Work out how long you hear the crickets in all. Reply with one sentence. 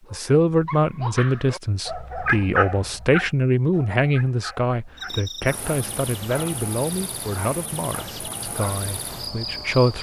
You can hear the crickets for 5 seconds altogether.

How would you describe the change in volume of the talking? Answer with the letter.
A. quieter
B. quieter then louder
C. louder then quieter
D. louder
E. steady
A.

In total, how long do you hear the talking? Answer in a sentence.
You can hear the talking for 10 seconds altogether.